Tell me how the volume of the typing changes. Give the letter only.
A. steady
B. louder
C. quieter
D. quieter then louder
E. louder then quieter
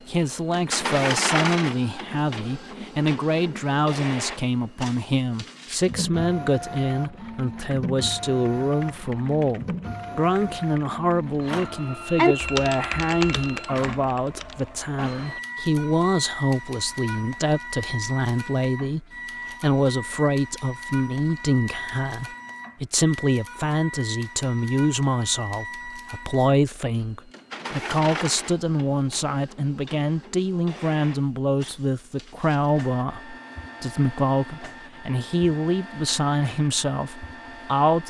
E.